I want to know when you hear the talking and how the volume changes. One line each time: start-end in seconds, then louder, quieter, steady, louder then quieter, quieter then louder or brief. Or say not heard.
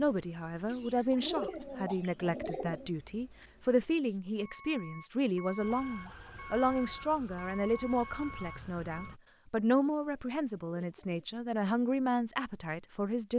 0.0-13.3 steady.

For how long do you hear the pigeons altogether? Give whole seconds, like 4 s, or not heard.
4 s.